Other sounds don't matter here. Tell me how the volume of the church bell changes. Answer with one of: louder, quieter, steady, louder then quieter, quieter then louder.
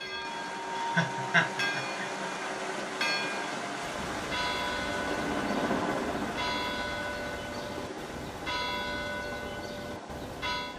steady.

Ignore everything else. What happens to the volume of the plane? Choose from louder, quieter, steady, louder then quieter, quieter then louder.
quieter.